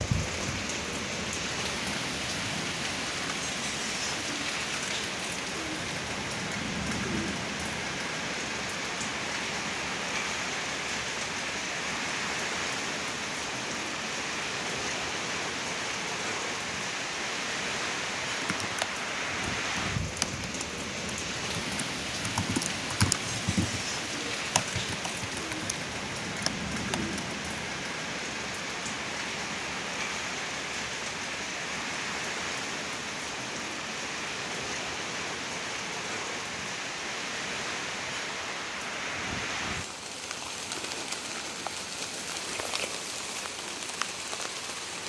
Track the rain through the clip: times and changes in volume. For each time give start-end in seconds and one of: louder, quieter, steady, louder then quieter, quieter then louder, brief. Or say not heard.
0.0-45.0 steady.